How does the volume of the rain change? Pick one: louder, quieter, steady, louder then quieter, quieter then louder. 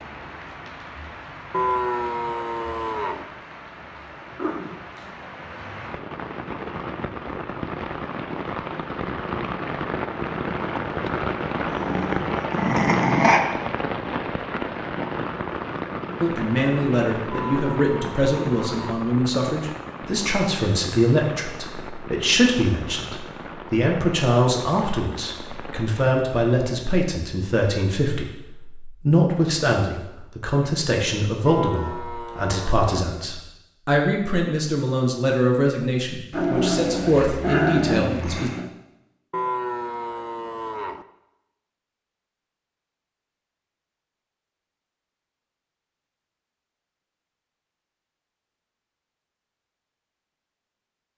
louder then quieter.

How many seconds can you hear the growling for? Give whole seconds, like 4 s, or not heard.
4 s.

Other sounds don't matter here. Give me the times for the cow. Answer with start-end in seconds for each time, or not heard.
1.5-3.2, 17.3-19.0, 31.4-32.9, 39.3-41.0.